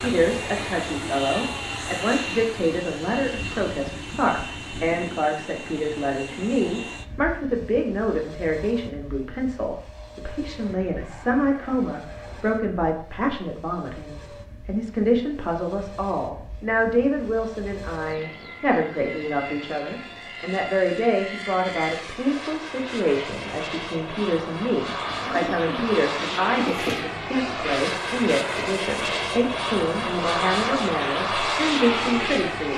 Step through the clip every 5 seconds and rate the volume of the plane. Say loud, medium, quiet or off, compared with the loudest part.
medium, quiet, quiet, quiet, medium, loud, loud.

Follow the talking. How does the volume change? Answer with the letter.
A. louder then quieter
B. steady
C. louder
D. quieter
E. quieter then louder
B.